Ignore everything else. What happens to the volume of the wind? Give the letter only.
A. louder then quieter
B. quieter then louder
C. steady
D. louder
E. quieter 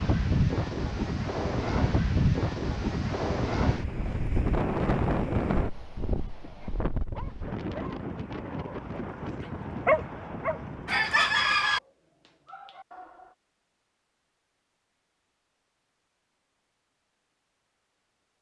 E.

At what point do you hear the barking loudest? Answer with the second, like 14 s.
10 s.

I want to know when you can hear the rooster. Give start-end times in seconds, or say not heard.
10.8-11.8.